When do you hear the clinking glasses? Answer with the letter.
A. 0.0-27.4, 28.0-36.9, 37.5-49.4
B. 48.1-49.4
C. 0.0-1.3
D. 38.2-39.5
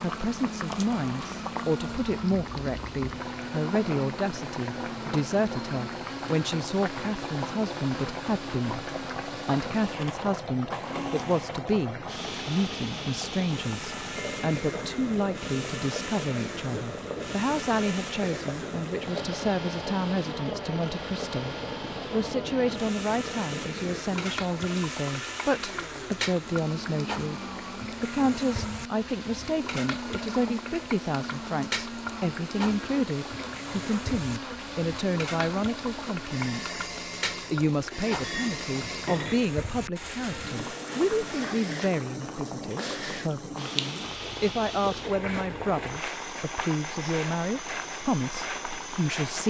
D.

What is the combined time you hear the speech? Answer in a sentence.
The speech can be heard for 48 seconds in total.